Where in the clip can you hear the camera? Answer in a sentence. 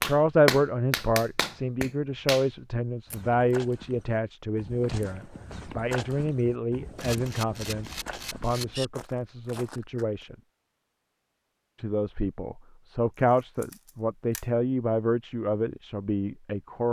The camera can be heard from 7.0 to 8.8 s and from 13.6 to 14.4 s.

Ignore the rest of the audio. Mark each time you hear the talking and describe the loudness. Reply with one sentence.
The talking can be heard from 0.0 to 10.3 s, getting quieter; and from 11.8 to 16.8 s, getting louder then quieter.